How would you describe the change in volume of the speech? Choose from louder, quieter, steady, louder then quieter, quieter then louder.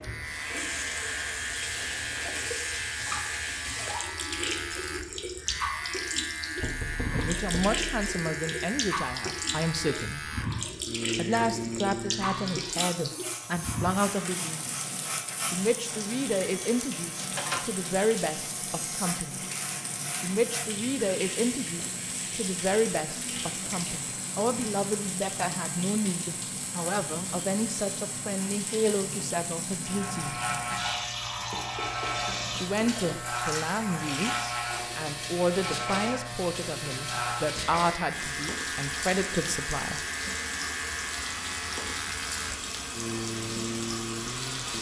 steady.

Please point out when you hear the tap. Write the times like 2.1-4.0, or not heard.
0.0-44.7.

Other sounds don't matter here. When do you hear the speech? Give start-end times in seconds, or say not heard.
7.1-10.2, 11.2-14.7, 15.5-19.4, 20.2-30.4, 32.5-40.0.